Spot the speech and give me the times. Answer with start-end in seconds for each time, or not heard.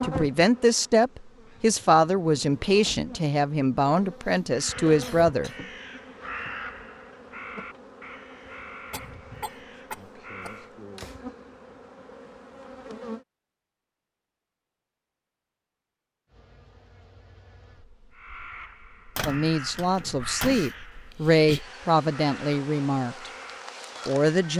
0.0-5.5, 19.2-23.3, 24.1-24.5.